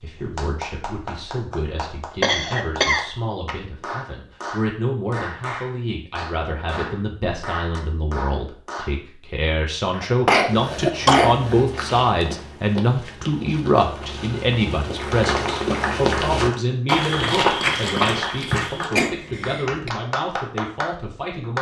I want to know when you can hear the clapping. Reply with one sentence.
You can hear the clapping from 0.0 to 8.9 s and from 14.9 to 21.5 s.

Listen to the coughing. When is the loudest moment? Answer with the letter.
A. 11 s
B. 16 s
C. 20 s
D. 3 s
A.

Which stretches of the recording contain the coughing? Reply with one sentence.
You can hear the coughing from 2.2 to 3.0 s, from 9.9 to 11.7 s and from 18.9 to 19.9 s.